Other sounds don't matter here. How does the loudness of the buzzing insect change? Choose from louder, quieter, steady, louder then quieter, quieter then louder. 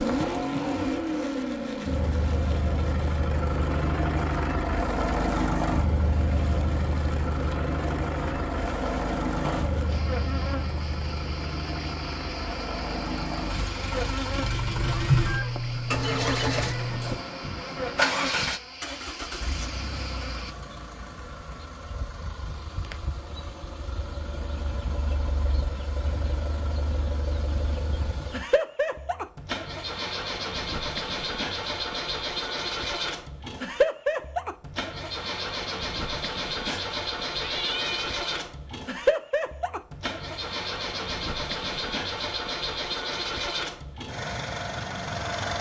steady.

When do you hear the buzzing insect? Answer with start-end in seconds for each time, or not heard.
0.0-20.6.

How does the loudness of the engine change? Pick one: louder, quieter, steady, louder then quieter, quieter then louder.
quieter then louder.